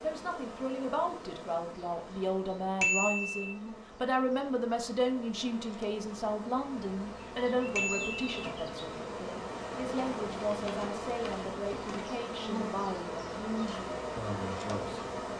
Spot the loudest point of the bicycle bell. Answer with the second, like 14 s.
3 s.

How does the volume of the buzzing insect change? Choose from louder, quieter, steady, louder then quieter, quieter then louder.
louder.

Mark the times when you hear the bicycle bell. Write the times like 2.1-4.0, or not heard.
2.8-3.5, 7.8-8.2.